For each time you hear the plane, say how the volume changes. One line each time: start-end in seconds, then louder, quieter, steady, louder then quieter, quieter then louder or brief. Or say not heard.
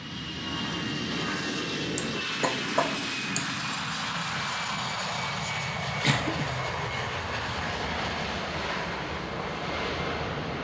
0.0-10.5 steady.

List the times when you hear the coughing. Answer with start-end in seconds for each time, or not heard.
1.9-3.4, 6.0-6.7.